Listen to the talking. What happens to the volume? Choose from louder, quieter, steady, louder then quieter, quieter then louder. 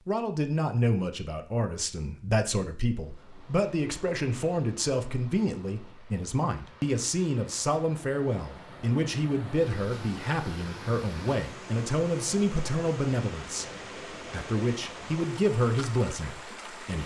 steady.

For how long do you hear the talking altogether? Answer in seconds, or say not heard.
17 s.